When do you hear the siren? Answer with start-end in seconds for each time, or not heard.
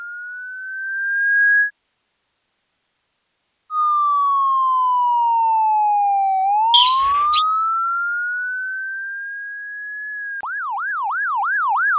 0.0-1.7, 3.7-11.9.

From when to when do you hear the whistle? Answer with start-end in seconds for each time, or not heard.
6.7-7.5.